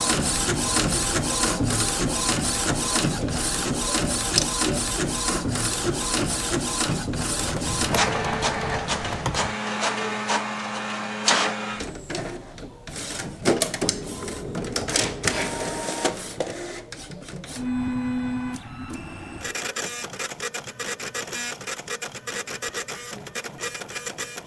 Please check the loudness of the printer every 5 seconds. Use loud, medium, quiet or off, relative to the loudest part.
loud, loud, loud, medium, medium.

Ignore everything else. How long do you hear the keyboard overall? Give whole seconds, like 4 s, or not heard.
4 s.